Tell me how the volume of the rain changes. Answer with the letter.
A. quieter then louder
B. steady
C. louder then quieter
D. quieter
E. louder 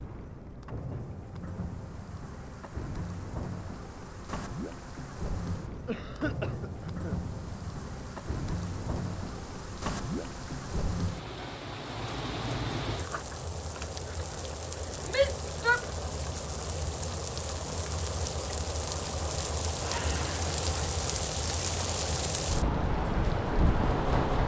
E.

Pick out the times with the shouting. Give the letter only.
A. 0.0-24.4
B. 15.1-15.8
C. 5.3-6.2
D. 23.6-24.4
B.